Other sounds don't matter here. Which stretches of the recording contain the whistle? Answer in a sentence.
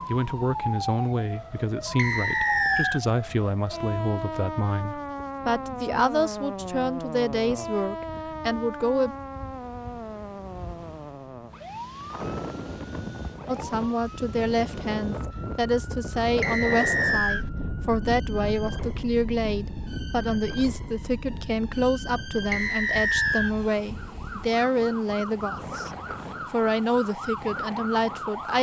You can hear the whistle from 1.9 to 3.0 s, from 16.4 to 17.4 s and from 22.5 to 23.6 s.